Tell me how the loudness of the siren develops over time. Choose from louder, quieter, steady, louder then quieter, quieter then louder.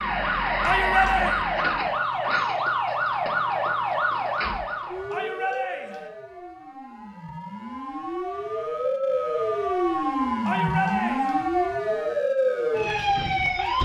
quieter then louder.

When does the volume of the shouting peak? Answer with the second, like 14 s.
1 s.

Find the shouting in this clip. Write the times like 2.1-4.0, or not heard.
0.6-1.4, 5.1-6.1, 10.4-11.4.